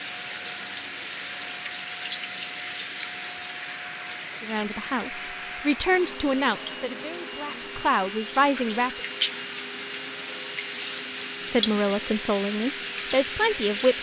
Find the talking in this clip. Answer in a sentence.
You can hear the talking from 4.4 to 9.0 s and from 11.5 to 13.9 s.